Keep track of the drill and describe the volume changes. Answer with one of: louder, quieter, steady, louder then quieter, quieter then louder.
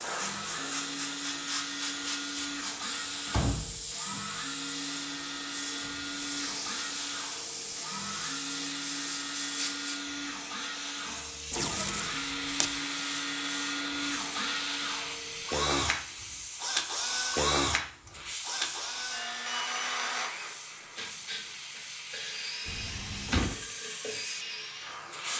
louder then quieter.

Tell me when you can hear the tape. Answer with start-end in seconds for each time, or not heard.
11.4-12.8.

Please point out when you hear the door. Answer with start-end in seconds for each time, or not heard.
3.2-4.2, 11.1-12.2, 22.6-23.6.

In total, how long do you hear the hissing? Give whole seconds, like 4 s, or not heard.
25 s.